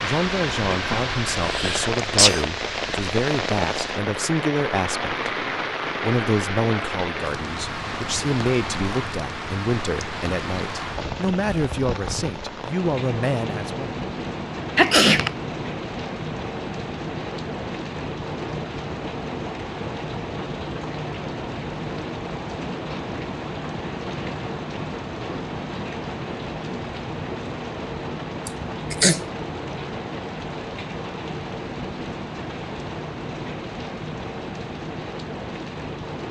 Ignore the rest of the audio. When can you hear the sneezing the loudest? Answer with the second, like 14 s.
15 s.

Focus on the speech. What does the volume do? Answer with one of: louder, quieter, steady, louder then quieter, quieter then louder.
steady.